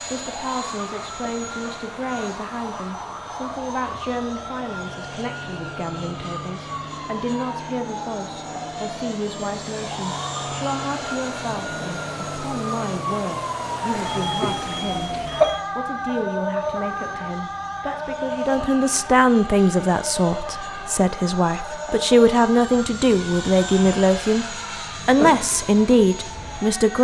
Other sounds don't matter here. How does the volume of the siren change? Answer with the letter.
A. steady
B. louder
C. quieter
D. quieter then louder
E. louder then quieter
E.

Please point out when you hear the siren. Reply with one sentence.
You can hear the siren from 0.0 to 26.9 s.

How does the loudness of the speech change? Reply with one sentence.
The volume of the speech goes up.